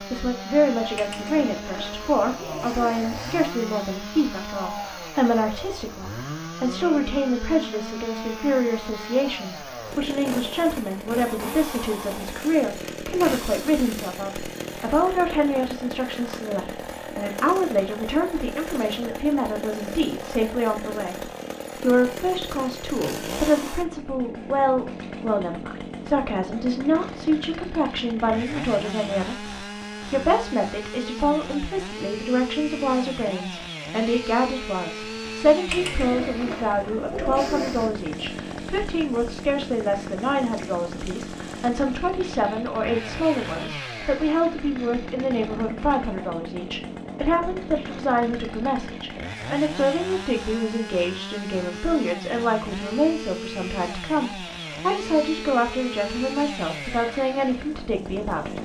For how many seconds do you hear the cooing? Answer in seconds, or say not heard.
5 s.